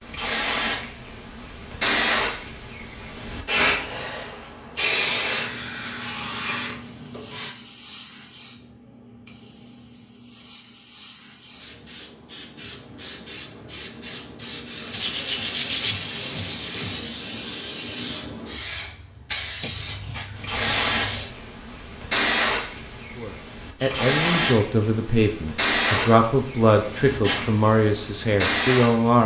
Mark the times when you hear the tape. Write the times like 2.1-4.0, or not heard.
not heard.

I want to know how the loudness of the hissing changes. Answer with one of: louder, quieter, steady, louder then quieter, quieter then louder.
quieter then louder.